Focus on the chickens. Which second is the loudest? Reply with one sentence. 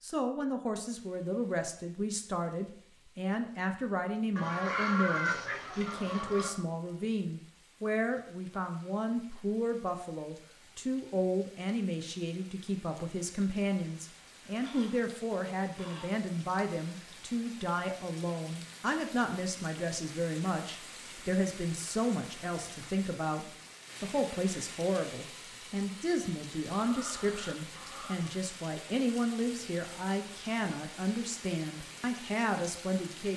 The loudest moment of the chickens is at 5 seconds.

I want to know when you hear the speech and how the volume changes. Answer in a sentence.
The speech can be heard from 0.0 to 33.3 s, at a steady volume.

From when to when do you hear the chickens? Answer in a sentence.
The chickens can be heard from 4.3 to 6.5 s, from 14.6 to 16.2 s and from 26.8 to 28.4 s.